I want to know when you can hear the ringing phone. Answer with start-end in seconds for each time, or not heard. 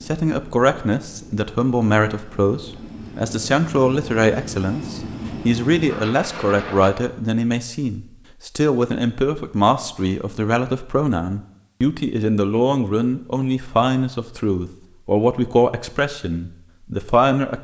not heard.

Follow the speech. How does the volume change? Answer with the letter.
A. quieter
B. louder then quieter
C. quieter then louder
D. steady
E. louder
D.